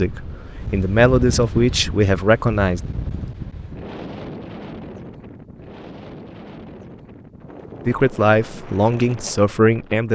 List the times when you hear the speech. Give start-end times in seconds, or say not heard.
0.0-2.8, 7.8-10.0.